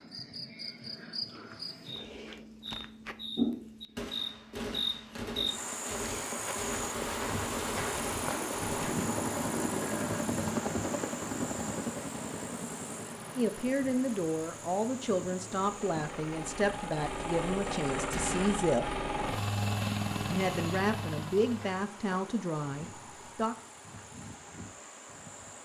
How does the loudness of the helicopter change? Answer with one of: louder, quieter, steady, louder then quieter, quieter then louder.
quieter then louder.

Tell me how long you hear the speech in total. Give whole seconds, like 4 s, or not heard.
9 s.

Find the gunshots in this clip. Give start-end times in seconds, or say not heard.
4.0-8.9, 18.1-18.6.